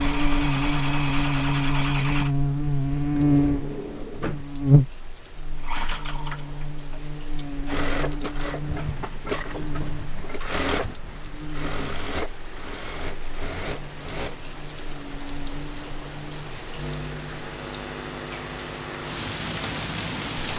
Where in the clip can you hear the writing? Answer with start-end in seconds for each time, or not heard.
not heard.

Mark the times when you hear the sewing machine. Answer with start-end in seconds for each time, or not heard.
0.0-2.3, 5.5-14.3.